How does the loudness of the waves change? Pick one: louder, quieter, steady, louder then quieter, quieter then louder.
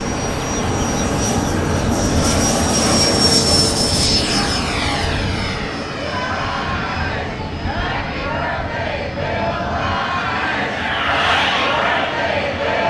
quieter.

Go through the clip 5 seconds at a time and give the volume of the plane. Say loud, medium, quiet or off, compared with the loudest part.
loud, medium, loud.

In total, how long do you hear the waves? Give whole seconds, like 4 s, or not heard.
13 s.